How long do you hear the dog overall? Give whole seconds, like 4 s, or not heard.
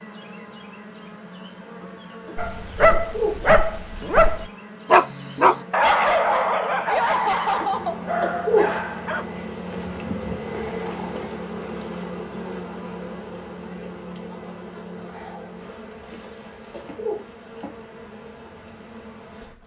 7 s.